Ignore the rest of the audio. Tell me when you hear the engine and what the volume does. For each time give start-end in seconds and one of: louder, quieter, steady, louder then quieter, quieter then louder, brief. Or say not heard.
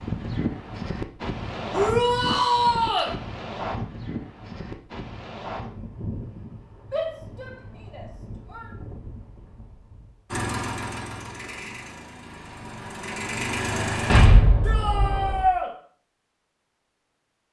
10.3-14.3 quieter then louder.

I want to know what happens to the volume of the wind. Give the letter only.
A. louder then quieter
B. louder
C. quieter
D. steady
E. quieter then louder
C.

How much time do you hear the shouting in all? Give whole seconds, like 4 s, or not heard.
4 s.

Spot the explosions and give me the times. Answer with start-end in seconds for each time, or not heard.
14.1-15.4.